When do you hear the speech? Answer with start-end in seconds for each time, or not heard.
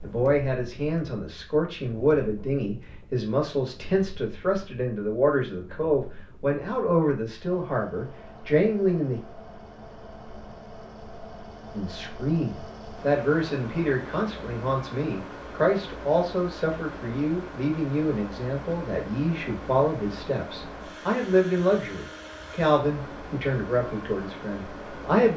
0.0-9.2, 11.7-25.3.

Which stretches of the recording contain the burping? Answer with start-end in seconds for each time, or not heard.
not heard.